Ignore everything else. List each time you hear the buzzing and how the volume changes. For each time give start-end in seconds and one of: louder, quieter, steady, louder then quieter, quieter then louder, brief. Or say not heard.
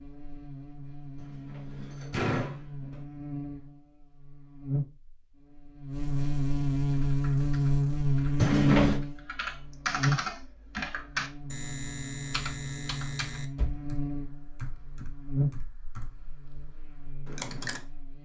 0.0-18.2 louder then quieter.